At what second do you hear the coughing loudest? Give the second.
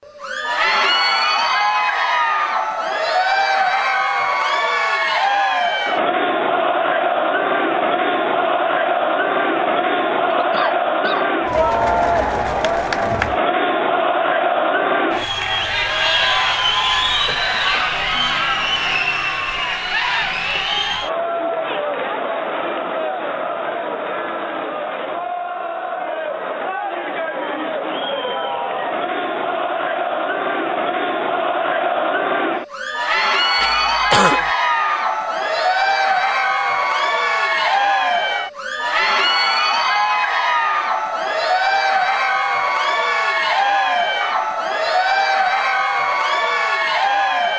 34 s.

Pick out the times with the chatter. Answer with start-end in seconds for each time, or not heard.
0.1-47.5.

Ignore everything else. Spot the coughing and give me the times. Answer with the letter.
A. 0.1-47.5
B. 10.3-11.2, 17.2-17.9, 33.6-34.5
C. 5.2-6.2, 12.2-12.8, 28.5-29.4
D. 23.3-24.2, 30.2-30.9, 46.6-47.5
B.